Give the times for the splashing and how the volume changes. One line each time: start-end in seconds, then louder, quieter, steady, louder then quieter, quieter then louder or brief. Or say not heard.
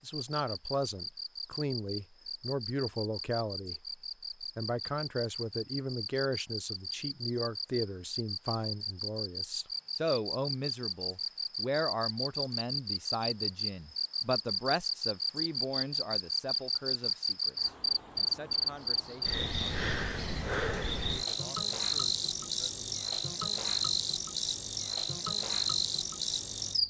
not heard.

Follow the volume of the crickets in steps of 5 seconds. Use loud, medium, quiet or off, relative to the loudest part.
medium, medium, loud, loud, loud, loud.